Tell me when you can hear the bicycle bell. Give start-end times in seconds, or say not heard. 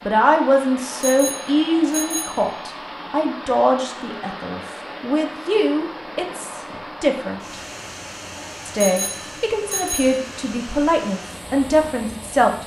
1.0-2.6, 8.8-10.2.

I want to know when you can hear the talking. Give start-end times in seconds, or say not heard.
0.1-7.6, 8.7-12.6.